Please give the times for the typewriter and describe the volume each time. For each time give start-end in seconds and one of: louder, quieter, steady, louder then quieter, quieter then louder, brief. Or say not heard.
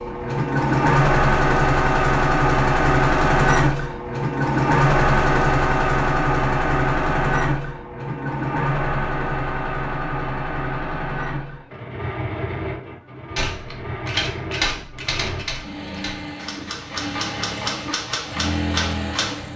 13.3-19.5 quieter then louder.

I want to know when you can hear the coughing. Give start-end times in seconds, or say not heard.
not heard.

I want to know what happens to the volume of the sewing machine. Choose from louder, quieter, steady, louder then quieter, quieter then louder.
quieter.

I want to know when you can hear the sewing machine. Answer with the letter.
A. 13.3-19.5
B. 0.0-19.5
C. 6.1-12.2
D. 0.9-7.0
B.